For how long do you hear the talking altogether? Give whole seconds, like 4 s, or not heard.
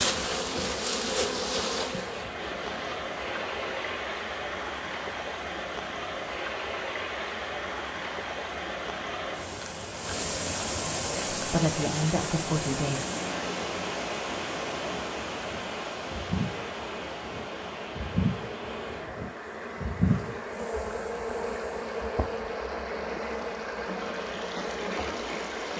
2 s.